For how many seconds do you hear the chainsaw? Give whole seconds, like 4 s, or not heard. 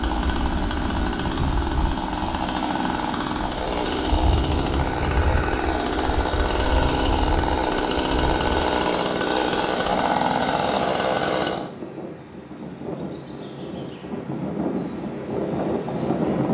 12 s.